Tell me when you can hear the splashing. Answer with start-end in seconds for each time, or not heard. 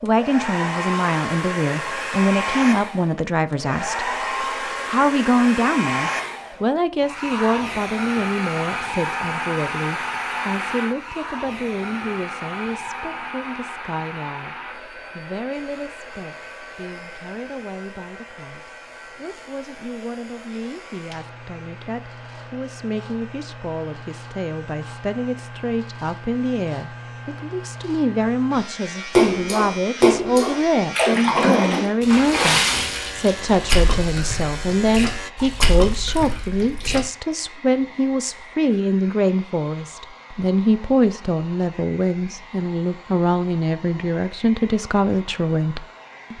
29.1-37.0.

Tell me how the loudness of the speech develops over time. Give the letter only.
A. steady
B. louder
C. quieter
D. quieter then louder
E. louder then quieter
D.